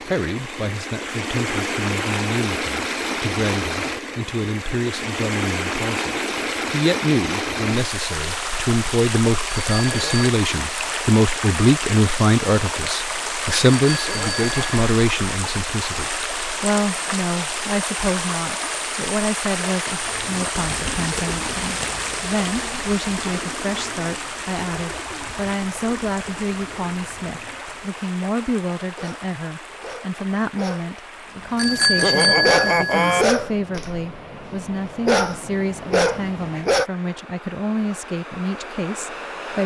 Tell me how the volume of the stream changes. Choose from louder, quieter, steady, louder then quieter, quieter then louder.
quieter.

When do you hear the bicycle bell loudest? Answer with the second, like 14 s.
32 s.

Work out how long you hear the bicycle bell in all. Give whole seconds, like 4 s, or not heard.
3 s.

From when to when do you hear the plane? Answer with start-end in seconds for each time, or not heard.
not heard.